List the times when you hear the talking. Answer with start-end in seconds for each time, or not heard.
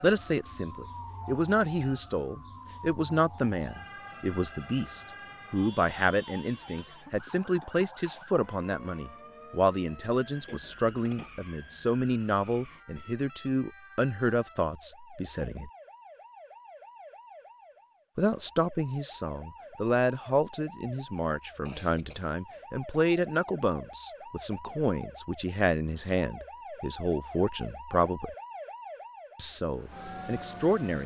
0.0-15.7, 18.1-28.3, 29.4-31.0.